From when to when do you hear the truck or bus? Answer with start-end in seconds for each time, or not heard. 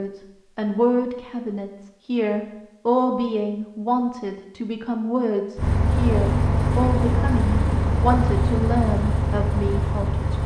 5.5-10.4.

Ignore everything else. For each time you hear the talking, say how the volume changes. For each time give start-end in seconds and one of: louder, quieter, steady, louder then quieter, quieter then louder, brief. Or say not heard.
0.0-10.4 steady.